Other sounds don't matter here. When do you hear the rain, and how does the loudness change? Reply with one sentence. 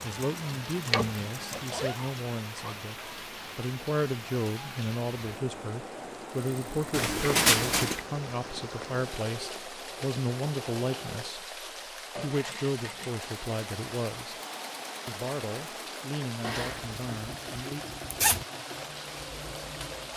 The rain can be heard from 0.0 to 20.1 s, at a steady volume.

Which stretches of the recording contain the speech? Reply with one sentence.
The speech can be heard from 0.0 to 14.3 s and from 15.1 to 17.9 s.